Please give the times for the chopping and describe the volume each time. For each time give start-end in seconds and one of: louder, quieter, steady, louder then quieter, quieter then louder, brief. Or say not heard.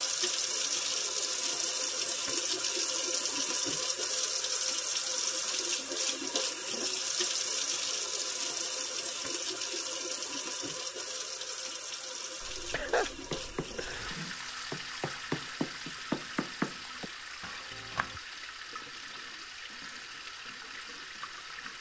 13.3-18.2 louder then quieter.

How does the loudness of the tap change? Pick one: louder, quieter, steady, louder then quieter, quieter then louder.
quieter.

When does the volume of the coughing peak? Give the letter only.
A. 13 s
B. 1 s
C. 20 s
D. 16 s
A.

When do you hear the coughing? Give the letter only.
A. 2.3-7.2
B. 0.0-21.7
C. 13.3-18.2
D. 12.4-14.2
D.